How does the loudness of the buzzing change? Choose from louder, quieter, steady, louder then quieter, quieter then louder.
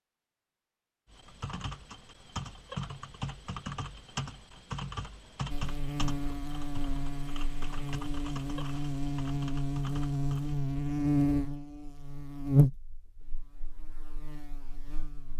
louder then quieter.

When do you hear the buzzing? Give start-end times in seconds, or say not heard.
5.5-15.3.